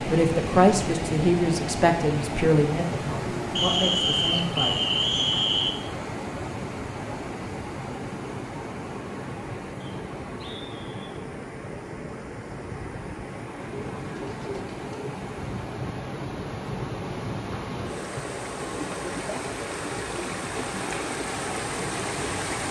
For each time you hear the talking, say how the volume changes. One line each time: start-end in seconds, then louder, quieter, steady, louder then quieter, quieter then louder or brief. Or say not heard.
0.1-4.8 quieter then louder.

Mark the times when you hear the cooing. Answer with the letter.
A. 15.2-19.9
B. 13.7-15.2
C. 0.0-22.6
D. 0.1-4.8
B.